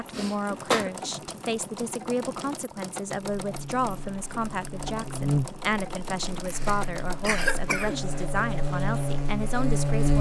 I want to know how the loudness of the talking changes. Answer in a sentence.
The volume of the talking stays about the same.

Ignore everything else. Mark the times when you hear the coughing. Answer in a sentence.
The coughing can be heard from 0.1 to 0.9 s and from 6.5 to 8.2 s.